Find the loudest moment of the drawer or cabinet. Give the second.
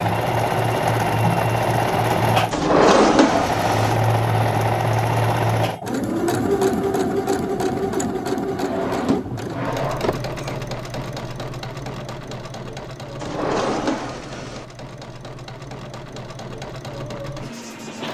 3 s.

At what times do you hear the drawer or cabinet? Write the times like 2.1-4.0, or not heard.
2.5-4.0, 8.6-10.6, 13.2-14.7.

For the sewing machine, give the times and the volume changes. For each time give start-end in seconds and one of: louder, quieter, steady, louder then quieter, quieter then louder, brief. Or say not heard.
0.0-18.0 quieter.